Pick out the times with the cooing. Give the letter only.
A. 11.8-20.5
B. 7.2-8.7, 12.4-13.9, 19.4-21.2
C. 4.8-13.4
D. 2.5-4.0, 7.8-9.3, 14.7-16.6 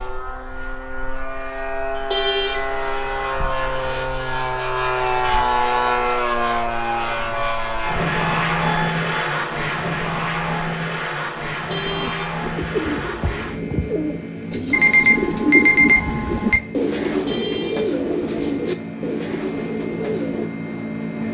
A.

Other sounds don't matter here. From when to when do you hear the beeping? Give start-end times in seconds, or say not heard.
2.5-4.0, 7.8-9.3, 14.7-16.6.